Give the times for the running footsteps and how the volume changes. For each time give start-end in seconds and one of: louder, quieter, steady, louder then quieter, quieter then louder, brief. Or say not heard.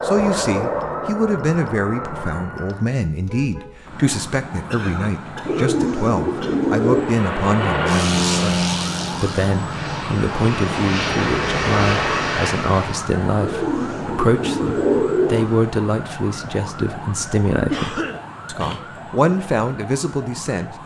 not heard.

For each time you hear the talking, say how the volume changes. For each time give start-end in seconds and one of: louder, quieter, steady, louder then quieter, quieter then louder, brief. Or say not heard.
0.1-20.8 steady.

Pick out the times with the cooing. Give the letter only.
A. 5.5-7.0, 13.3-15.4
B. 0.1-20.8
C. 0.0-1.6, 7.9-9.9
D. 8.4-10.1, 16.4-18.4
A.